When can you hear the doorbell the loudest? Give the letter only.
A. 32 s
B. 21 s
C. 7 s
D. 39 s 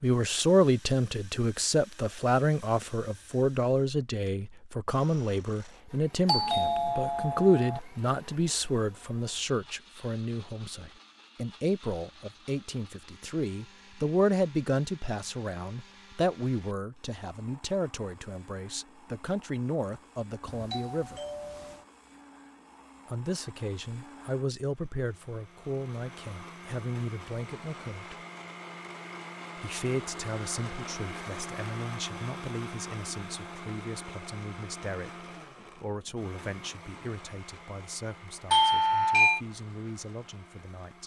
D.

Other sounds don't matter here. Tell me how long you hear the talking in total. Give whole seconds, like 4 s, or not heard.
38 s.